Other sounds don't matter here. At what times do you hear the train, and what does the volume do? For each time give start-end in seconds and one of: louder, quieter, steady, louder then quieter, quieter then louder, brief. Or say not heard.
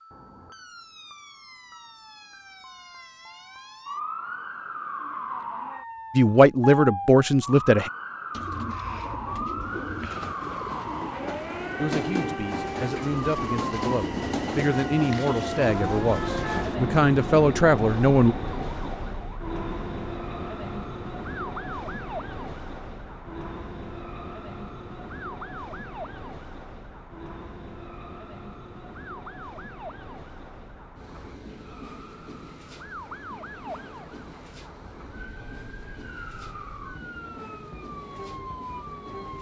9.6-39.3 quieter.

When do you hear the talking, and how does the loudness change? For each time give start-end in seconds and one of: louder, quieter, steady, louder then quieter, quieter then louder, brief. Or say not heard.
6.2-7.9 brief
11.8-18.4 louder.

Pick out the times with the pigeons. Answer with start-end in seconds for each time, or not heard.
8.3-16.8.